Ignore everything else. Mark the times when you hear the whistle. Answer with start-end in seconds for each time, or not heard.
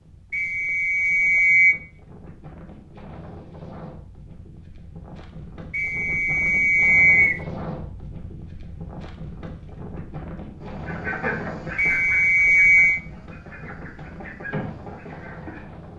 0.3-1.8, 5.7-7.4, 11.8-13.0.